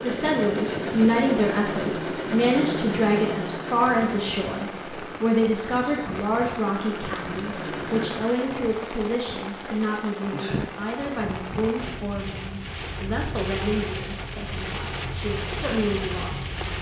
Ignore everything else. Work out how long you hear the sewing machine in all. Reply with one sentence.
The sewing machine can be heard for 8 seconds in total.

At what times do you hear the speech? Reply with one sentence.
You can hear the speech from 0.0 to 16.7 s.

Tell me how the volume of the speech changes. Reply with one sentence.
The loudness of the speech goes down.